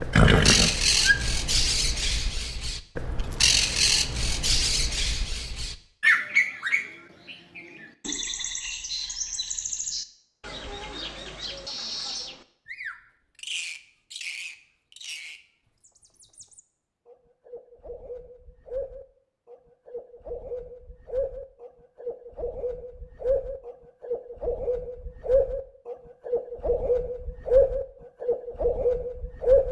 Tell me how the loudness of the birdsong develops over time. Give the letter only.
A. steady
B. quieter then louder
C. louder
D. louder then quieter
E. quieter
B.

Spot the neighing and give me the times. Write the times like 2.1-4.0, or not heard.
0.1-1.1.